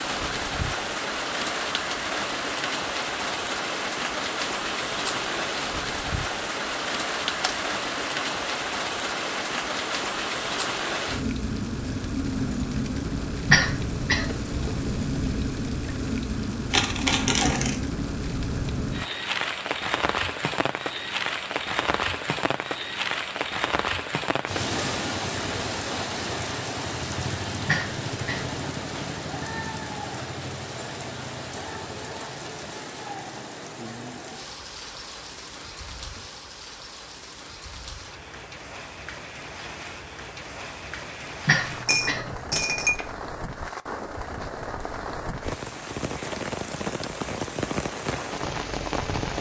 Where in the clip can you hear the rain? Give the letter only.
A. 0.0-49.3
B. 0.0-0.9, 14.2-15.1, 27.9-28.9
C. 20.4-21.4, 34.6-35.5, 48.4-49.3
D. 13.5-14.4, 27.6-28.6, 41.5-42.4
A.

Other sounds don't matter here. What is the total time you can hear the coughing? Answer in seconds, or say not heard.
3 s.